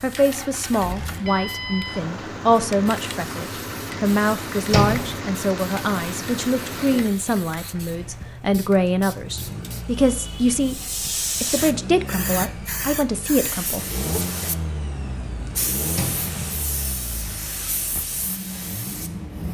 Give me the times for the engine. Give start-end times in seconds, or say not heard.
0.0-19.4.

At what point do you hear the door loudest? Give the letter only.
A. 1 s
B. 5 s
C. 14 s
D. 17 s
B.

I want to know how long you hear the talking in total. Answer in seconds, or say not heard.
14 s.